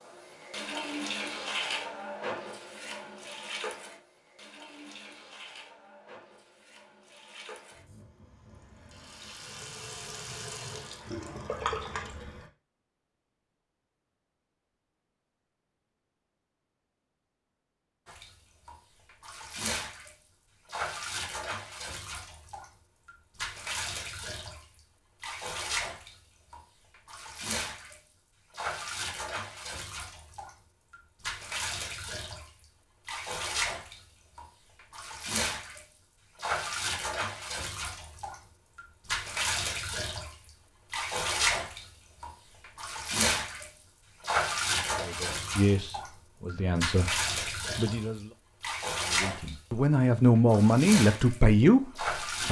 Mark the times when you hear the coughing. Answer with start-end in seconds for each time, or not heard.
not heard.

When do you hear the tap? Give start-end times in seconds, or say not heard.
0.0-12.4, 18.1-52.4.